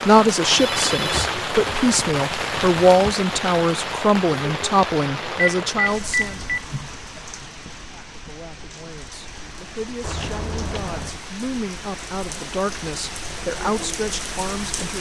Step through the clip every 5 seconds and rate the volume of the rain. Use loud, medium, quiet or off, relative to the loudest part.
loud, medium, medium.